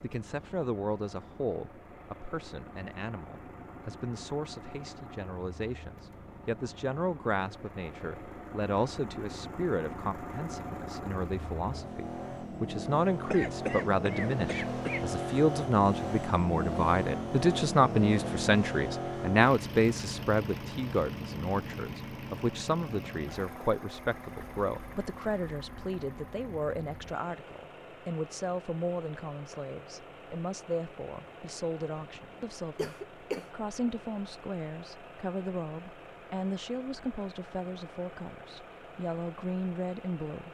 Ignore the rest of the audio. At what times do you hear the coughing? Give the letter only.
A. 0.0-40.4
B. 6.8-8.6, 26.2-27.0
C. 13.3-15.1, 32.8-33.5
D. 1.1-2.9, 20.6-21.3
C.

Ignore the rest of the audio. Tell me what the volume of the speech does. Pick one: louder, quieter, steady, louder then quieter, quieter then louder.
louder then quieter.